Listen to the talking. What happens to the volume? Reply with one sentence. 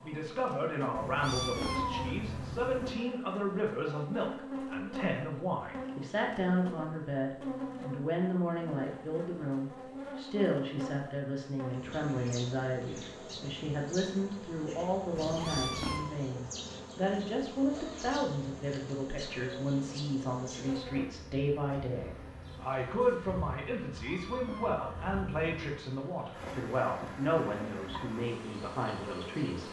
The loudness of the talking stays about the same.